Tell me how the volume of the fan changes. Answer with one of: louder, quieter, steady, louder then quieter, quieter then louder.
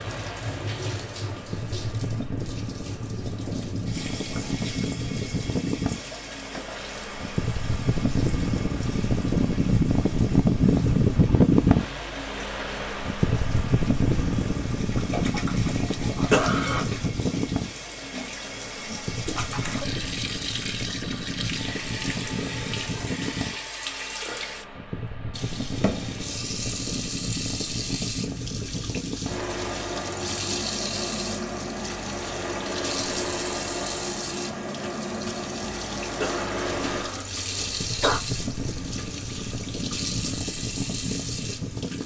louder then quieter.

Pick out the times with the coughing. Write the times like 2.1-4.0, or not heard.
16.3-16.9, 36.2-38.2.